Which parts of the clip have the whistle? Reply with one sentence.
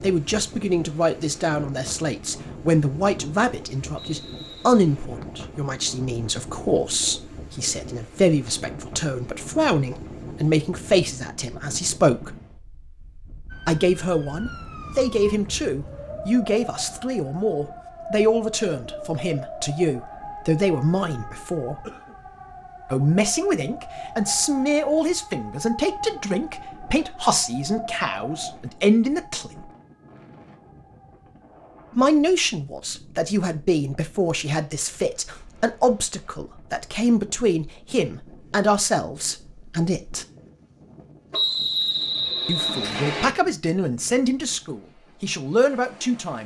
You can hear the whistle from 4.0 to 4.6 s and from 41.3 to 43.3 s.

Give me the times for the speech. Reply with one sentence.
You can hear the speech from 0.0 to 12.3 s, from 13.7 to 21.9 s, from 22.9 to 29.7 s, from 31.9 to 40.2 s and from 42.5 to 46.4 s.